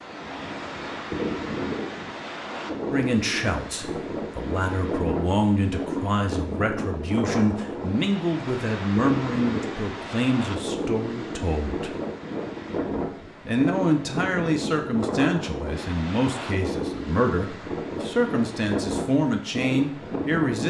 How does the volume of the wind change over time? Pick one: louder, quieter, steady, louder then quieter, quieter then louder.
steady.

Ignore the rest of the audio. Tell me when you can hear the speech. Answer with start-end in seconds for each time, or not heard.
2.9-11.9, 13.4-20.6.